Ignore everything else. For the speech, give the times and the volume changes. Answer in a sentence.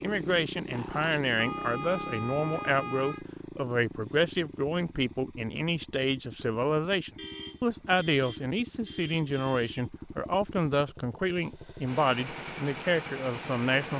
You can hear the speech from 0.0 to 13.9 s, at a steady volume.